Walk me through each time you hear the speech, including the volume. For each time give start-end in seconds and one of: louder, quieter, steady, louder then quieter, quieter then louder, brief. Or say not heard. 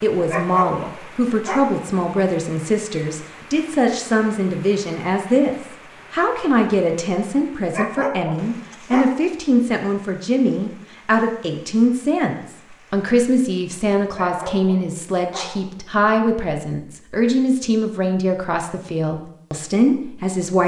0.0-20.6 steady.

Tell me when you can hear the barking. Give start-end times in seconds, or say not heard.
0.2-1.8, 7.7-9.4, 14.1-15.8.